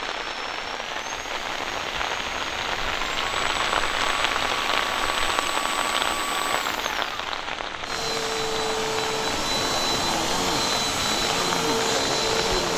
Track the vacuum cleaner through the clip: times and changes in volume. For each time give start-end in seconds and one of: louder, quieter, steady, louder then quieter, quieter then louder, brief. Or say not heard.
0.0-12.7 louder.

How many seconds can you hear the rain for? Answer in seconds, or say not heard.
13 s.